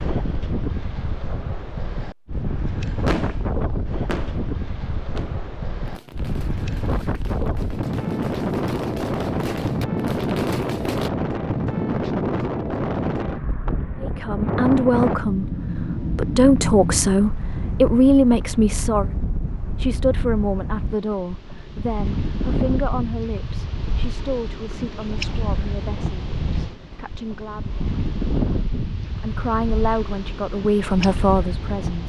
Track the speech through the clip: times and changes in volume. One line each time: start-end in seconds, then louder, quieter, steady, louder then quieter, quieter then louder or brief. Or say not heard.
14.0-19.1 quieter then louder
19.8-27.8 quieter
29.2-32.0 brief.